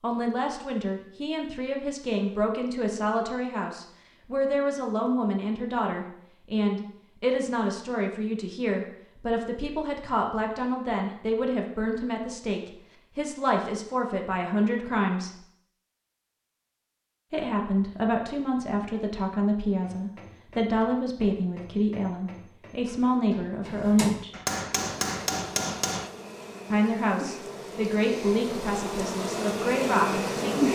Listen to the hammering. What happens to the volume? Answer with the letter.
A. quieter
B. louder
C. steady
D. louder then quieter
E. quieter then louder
B.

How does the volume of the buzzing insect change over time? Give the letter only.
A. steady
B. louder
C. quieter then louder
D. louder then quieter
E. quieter
B.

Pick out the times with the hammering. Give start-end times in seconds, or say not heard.
19.8-26.1.